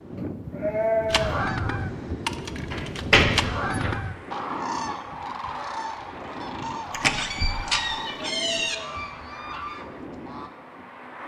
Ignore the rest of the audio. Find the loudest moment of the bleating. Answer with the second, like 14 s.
1 s.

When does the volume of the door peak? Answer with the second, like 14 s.
3 s.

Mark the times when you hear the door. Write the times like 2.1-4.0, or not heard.
2.7-4.0, 6.9-8.8.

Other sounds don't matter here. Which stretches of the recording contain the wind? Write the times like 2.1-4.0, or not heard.
0.0-11.2.